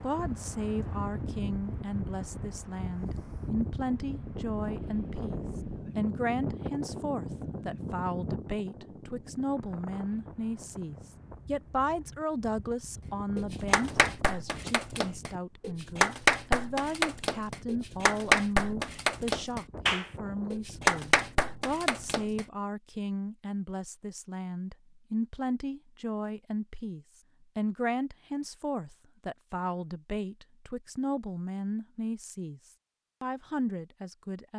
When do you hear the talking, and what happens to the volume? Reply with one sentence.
The talking can be heard from 0.0 to 32.6 s, at a steady volume; and briefly from 33.2 to 34.5 s.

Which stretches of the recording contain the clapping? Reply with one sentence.
The clapping can be heard from 13.3 to 22.4 s.